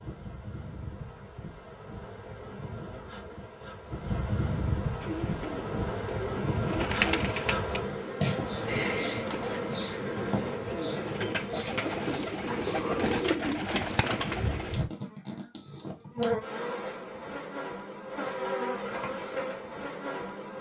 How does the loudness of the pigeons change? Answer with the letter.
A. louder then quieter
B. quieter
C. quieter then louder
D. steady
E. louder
C.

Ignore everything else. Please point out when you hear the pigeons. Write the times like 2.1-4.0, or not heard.
5.0-14.8.